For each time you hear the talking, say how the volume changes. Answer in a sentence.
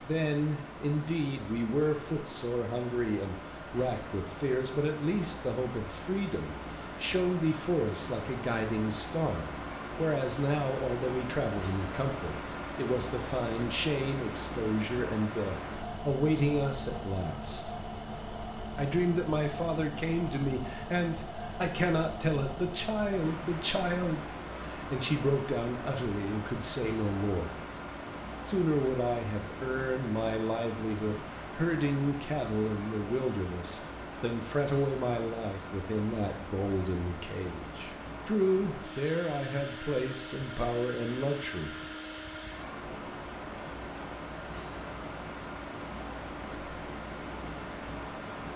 You can hear the talking from 0.1 to 17.7 s, at a steady volume; from 18.8 to 27.6 s, at a steady volume; and from 28.4 to 41.9 s, at a steady volume.